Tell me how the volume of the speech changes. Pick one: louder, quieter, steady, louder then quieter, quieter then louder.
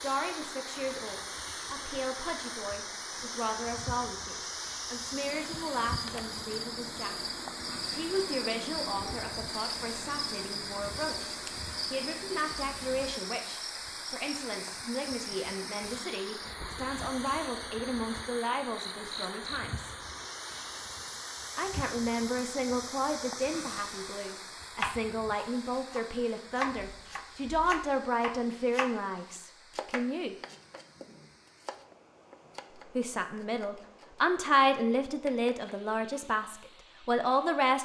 louder.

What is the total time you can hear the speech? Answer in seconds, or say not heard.
33 s.